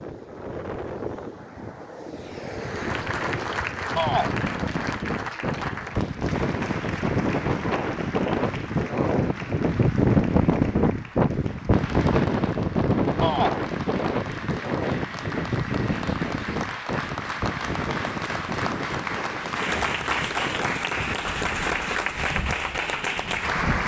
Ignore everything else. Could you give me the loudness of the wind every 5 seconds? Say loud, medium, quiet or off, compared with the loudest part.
medium, loud, loud, medium, quiet.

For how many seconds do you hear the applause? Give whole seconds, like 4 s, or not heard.
21 s.